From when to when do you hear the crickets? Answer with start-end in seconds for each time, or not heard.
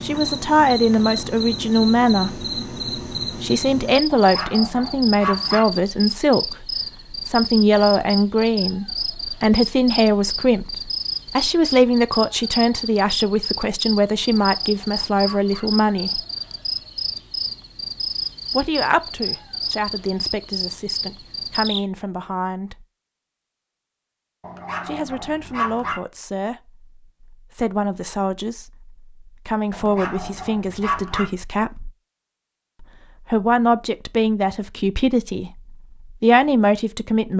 0.0-21.9.